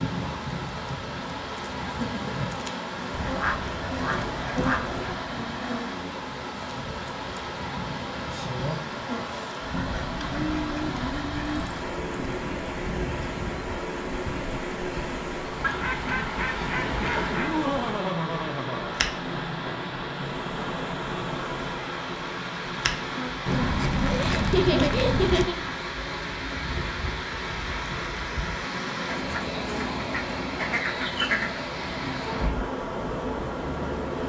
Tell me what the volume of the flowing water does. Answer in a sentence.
The volume of the flowing water stays about the same.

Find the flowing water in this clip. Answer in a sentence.
You can hear the flowing water from 0.0 to 34.2 s.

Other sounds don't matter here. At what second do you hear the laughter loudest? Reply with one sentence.
The loudest moment of the laughter is at 25 seconds.